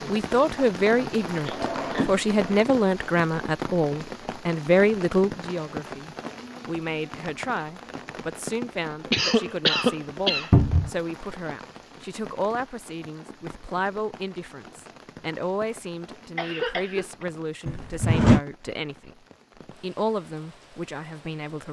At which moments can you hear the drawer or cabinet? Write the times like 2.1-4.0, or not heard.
1.5-2.6, 10.5-10.9, 17.6-18.4.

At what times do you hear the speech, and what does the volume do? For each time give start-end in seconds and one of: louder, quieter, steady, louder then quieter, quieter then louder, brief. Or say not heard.
0.1-19.1 quieter
19.8-21.6 brief.